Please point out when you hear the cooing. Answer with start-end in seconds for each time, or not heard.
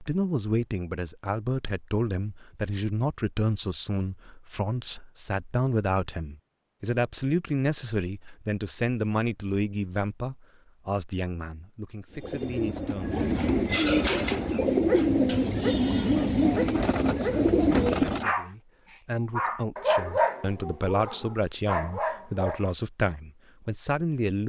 12.1-18.3.